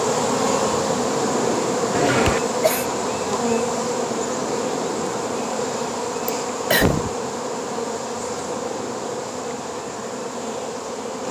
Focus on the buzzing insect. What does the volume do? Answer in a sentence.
The volume of the buzzing insect goes down.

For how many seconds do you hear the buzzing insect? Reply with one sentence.
You can hear the buzzing insect for 11 seconds altogether.